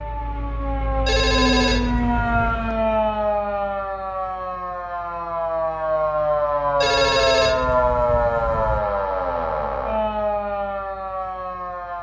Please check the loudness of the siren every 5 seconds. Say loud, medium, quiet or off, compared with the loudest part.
loud, loud, medium.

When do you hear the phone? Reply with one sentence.
You can hear the phone from 1.1 to 2.7 s and from 6.8 to 8.8 s.